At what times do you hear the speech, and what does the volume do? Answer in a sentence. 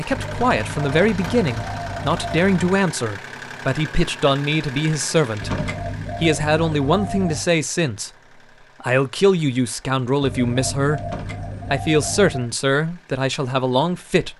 You can hear the speech from 0.0 to 5.6 s, at a steady volume; briefly from 6.2 to 8.1 s; briefly from 8.8 to 11.1 s; and briefly from 11.7 to 14.3 s.